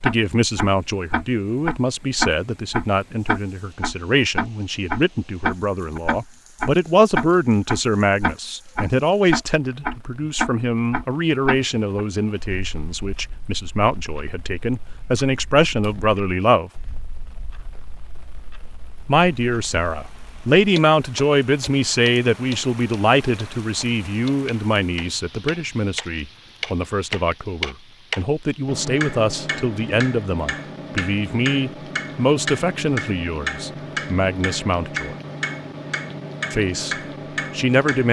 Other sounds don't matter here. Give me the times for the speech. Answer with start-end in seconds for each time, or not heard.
0.0-16.7, 19.1-35.1, 36.5-38.0.